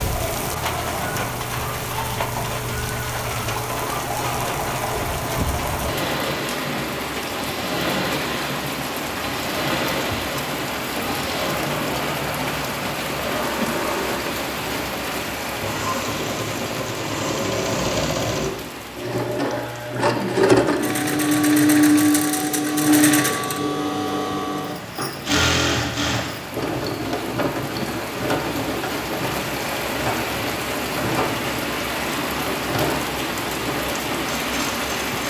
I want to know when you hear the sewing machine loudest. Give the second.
22 s.